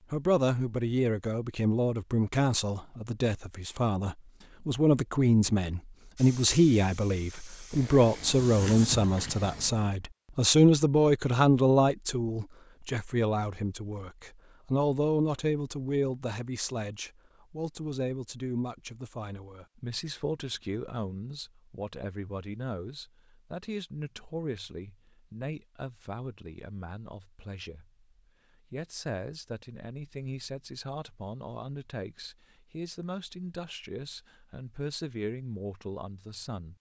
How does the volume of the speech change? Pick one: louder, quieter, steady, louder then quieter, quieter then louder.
quieter.